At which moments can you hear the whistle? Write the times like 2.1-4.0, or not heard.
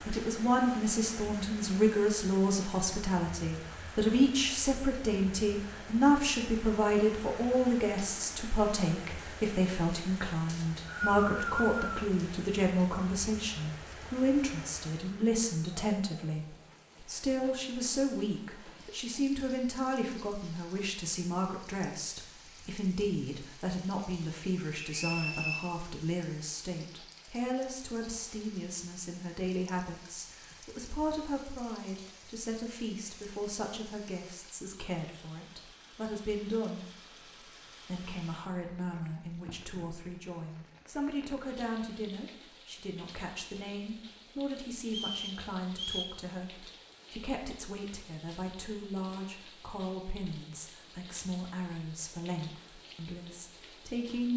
10.4-12.0, 24.8-25.6, 44.9-46.1.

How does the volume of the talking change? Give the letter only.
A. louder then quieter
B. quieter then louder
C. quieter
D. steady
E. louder
C.